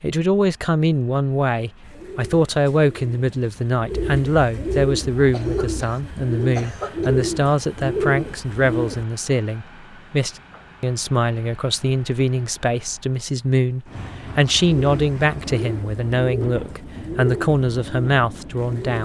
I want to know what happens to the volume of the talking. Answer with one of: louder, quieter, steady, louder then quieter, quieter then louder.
steady.